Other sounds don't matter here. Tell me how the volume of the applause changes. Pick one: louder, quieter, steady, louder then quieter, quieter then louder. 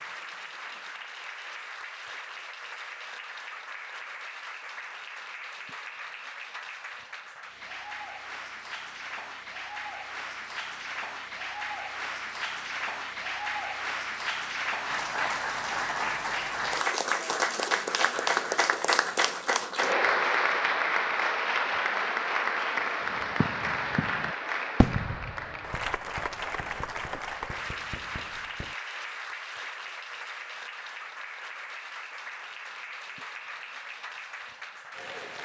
louder then quieter.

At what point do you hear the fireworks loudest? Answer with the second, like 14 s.
25 s.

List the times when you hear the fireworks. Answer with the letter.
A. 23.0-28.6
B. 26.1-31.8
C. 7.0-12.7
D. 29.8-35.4
A.